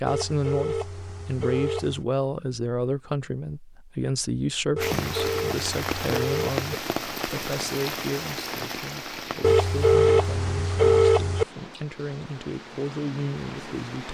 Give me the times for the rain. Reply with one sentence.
You can hear the rain from 4.8 to 14.1 s.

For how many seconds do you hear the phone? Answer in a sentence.
The phone can be heard for 6 seconds in total.